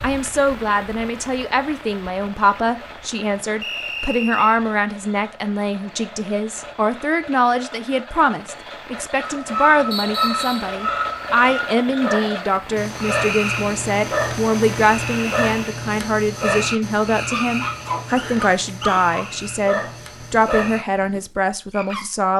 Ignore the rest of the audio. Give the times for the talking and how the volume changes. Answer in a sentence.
The talking can be heard from 0.0 to 22.3 s, at a steady volume.